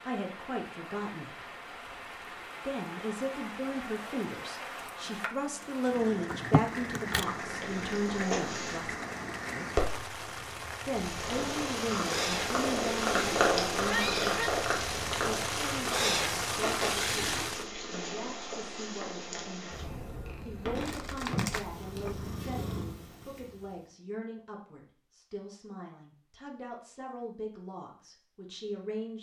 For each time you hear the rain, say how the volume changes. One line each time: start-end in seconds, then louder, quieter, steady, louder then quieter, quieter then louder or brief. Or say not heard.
0.0-17.6 louder.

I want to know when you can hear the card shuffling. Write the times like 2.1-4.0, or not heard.
6.3-7.2, 20.6-22.2.